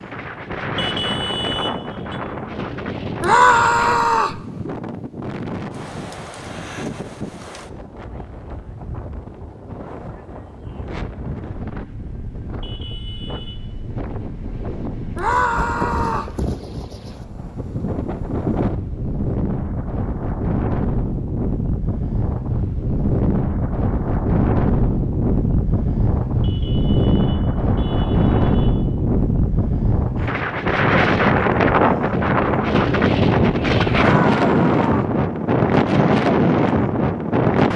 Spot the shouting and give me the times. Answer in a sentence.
You can hear the shouting from 3.2 to 4.4 s, from 15.2 to 16.4 s and from 34.0 to 35.1 s.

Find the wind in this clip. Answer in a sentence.
You can hear the wind from 0.0 to 37.7 s.